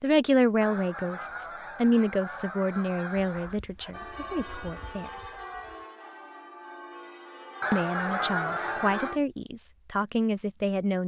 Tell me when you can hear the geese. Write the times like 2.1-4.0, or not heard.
0.6-3.6, 7.6-9.2.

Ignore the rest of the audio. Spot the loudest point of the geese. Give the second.
8 s.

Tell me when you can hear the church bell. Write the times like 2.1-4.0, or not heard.
3.9-9.2.